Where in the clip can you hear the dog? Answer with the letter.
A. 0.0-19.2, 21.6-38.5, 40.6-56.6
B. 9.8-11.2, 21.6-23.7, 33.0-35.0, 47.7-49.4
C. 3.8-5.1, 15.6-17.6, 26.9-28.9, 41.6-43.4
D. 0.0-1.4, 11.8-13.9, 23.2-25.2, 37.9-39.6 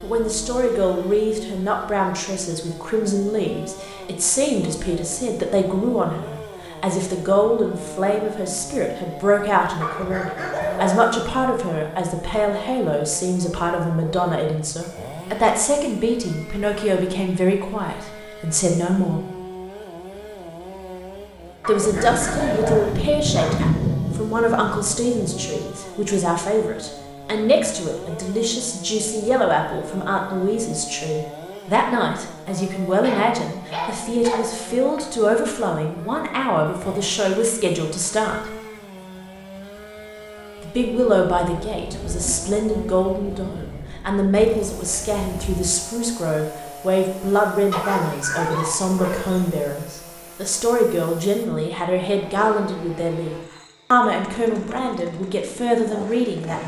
B.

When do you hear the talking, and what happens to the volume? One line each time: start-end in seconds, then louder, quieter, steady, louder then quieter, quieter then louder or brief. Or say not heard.
0.0-19.2 steady
21.6-38.5 steady
40.6-56.6 steady.